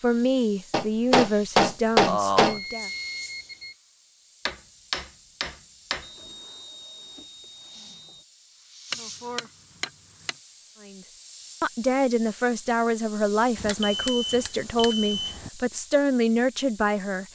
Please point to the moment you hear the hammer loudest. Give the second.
2 s.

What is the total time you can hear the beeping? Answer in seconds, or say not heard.
5 s.